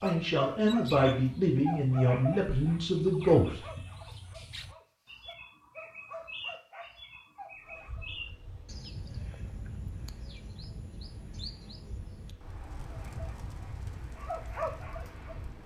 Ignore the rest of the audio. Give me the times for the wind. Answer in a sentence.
The wind can be heard from 7.5 to 15.6 s.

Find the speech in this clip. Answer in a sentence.
The speech can be heard from 0.0 to 3.8 s.